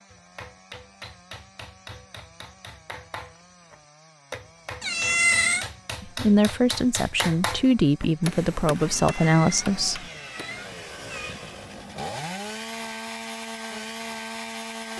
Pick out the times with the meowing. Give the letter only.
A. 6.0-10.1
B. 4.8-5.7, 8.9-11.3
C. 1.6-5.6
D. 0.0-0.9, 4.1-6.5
B.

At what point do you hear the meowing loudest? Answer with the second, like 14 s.
5 s.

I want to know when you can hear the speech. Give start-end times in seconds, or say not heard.
6.0-10.1.